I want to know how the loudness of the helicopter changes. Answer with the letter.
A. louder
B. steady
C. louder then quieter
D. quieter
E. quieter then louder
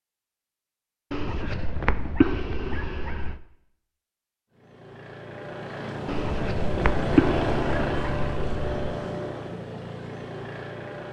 C.